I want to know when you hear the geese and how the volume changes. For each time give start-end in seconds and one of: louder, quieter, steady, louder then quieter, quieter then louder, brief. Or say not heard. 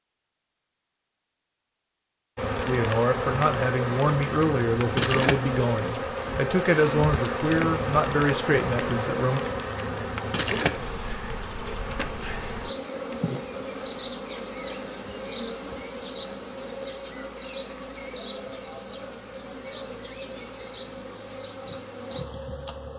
not heard.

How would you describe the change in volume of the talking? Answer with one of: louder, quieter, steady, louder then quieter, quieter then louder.
steady.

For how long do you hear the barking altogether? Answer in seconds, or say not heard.
not heard.